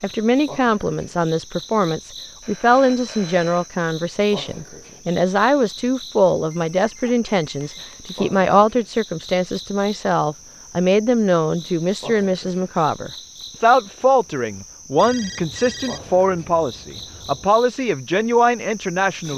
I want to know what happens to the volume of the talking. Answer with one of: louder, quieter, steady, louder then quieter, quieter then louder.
steady.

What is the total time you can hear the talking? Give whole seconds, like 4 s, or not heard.
19 s.